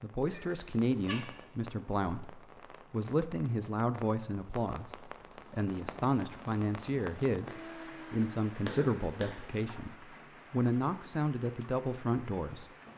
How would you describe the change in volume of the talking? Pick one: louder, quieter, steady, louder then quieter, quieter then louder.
steady.